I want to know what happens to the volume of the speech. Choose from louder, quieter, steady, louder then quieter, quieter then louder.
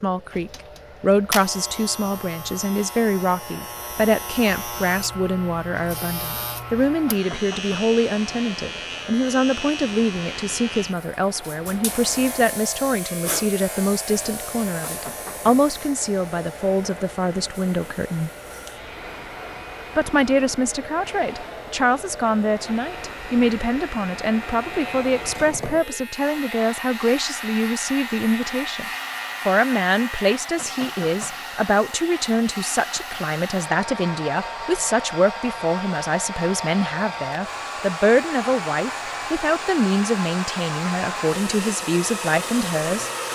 steady.